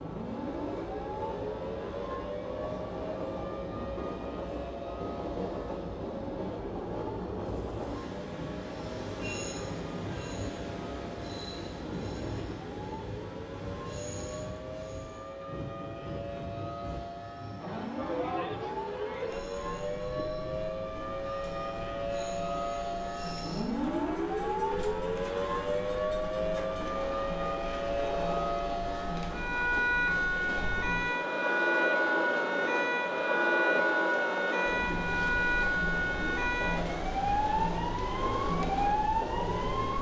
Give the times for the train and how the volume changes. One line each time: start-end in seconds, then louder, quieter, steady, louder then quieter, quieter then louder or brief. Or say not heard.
0.0-39.9 quieter then louder.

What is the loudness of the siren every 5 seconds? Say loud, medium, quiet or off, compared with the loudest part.
medium, quiet, quiet, medium, loud, loud, loud, loud.